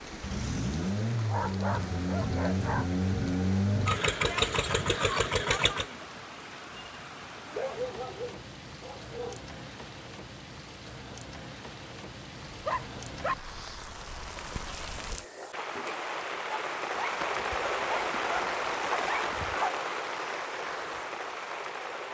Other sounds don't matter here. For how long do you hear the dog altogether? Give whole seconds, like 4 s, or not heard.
7 s.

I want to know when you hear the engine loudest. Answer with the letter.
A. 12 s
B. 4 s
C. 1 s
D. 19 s
B.